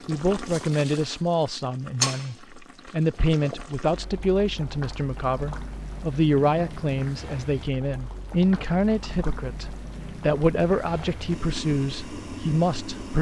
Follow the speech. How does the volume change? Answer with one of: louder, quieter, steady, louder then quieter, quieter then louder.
steady.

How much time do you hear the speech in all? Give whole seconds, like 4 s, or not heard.
13 s.